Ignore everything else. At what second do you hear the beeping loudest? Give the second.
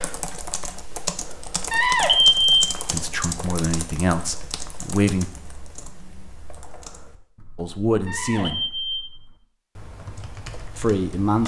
2 s.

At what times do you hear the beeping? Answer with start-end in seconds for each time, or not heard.
1.7-2.5, 8.1-9.1.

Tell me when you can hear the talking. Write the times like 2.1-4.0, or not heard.
2.9-5.3, 7.5-8.6, 10.8-11.4.